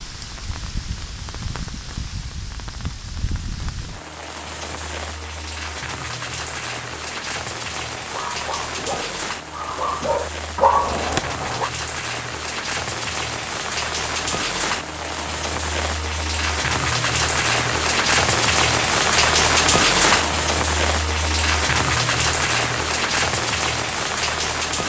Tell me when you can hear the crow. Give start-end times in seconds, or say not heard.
not heard.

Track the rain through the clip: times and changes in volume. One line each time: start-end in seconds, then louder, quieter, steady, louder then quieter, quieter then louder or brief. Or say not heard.
0.0-24.8 louder.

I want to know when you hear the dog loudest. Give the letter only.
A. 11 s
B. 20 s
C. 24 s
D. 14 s
A.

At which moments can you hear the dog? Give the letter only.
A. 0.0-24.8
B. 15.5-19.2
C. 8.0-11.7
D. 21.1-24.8
C.